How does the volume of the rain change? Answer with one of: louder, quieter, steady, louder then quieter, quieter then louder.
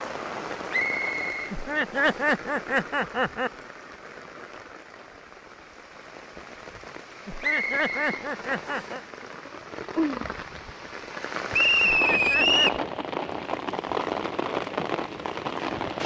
quieter then louder.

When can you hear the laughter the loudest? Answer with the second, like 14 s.
2 s.